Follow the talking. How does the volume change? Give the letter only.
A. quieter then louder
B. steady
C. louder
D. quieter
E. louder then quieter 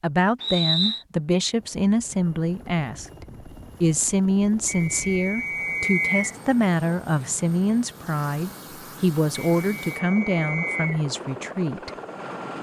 B.